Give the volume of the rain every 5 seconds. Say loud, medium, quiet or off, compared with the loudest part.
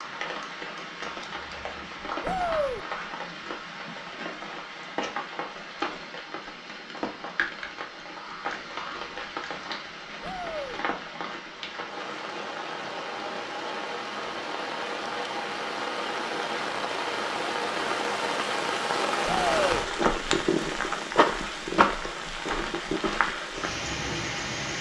medium, medium, medium, loud, loud.